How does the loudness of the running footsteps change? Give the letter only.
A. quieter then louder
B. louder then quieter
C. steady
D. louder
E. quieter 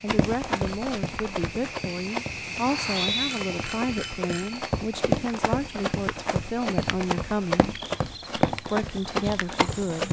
A.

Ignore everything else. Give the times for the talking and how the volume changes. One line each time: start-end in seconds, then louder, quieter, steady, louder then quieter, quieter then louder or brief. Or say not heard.
0.0-7.7 steady
8.7-10.0 brief.